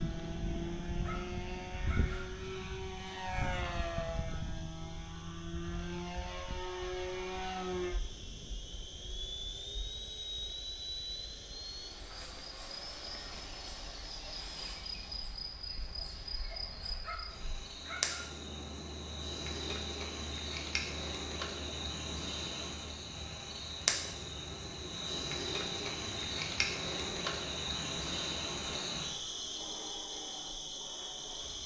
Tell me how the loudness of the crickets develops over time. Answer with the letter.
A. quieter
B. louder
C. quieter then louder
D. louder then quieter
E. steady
B.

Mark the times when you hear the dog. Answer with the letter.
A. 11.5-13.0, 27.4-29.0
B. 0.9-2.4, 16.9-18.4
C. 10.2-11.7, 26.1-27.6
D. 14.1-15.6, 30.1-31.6
B.